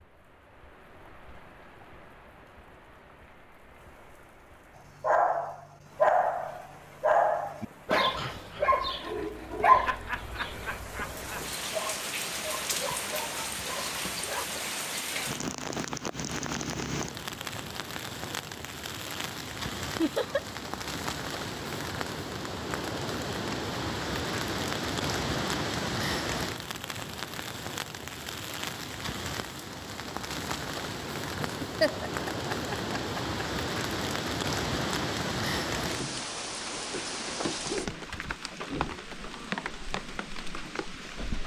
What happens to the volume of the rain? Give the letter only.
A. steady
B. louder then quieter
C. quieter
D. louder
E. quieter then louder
D.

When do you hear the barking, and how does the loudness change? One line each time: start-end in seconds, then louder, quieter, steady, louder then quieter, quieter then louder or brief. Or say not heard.
5.0-14.4 quieter.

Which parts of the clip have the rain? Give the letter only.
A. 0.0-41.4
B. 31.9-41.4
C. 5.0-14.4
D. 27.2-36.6
A.